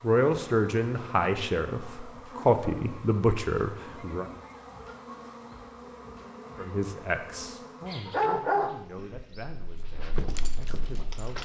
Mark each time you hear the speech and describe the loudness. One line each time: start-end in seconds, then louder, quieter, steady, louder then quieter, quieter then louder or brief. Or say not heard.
0.0-4.3 steady
6.5-11.4 quieter.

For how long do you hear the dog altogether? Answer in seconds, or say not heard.
3 s.